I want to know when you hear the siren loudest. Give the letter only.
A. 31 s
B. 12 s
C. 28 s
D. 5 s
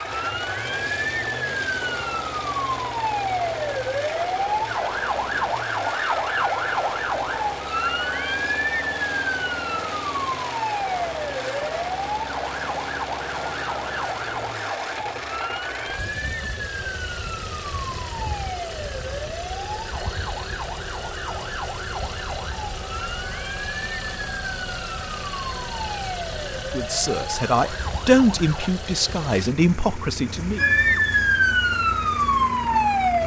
A.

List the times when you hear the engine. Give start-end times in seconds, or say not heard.
0.0-33.2.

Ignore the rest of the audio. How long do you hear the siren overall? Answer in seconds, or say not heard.
31 s.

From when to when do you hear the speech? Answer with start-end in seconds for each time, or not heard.
26.7-30.6.